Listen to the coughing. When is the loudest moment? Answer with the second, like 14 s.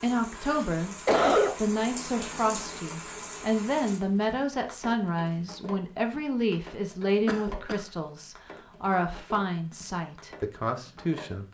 1 s.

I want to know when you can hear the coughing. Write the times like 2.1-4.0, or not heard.
0.3-1.6, 7.2-7.8.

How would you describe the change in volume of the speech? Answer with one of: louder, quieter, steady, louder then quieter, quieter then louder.
steady.